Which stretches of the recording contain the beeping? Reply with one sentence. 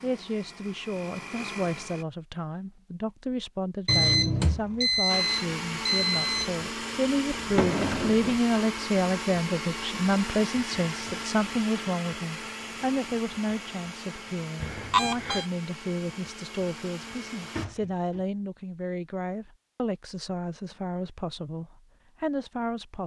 The beeping can be heard from 3.9 to 6.5 s and from 14.6 to 15.4 s.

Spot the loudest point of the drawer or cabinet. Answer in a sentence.
The volume of the drawer or cabinet peaks at 8 seconds.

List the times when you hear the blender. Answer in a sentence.
You can hear the blender from 0.0 to 2.0 s and from 5.0 to 17.6 s.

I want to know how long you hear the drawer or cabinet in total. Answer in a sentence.
The drawer or cabinet can be heard for 2 seconds in total.